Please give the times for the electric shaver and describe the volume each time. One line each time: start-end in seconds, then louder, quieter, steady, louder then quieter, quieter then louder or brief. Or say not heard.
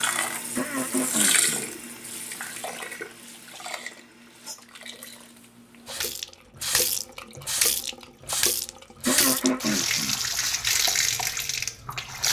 not heard.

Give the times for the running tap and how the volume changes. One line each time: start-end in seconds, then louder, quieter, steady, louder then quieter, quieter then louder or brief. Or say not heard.
0.0-12.2 quieter then louder.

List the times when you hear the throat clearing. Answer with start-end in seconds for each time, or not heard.
0.6-1.7, 9.1-10.2.